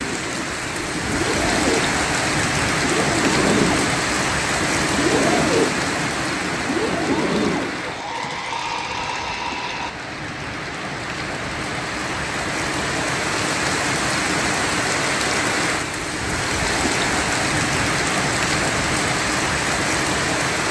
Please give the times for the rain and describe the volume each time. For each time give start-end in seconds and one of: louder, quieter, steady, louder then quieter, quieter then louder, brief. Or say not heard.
0.0-20.6 quieter then louder.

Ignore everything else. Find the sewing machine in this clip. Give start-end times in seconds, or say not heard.
0.0-9.9.